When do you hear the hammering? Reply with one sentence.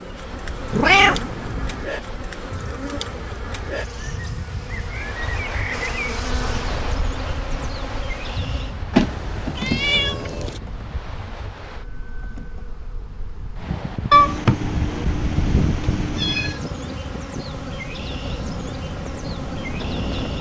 You can't hear the hammering here.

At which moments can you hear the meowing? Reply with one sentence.
You can hear the meowing from 0.7 to 1.9 s, from 8.9 to 10.6 s and from 14.1 to 16.6 s.